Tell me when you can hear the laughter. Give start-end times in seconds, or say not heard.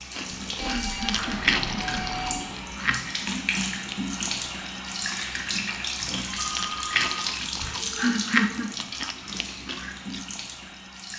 0.3-2.1, 7.6-8.7.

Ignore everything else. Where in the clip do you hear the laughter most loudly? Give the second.
8 s.